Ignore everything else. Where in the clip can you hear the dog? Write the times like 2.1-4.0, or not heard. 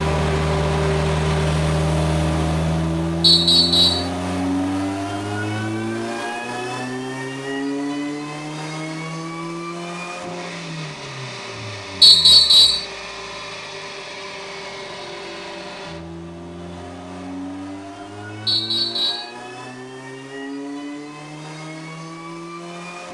not heard.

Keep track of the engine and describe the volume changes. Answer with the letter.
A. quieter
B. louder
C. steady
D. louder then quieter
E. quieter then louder
A.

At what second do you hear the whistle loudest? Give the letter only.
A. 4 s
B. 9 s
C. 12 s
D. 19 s
C.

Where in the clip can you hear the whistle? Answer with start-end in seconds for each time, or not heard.
3.2-4.1, 12.0-12.8, 18.4-19.3.